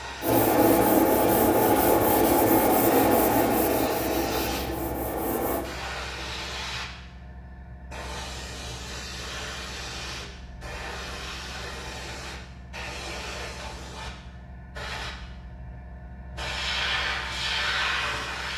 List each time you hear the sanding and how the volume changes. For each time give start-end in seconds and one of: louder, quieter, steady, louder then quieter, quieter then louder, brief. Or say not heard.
0.2-5.7 quieter.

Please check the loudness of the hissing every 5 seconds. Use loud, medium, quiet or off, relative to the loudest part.
medium, medium, medium, loud.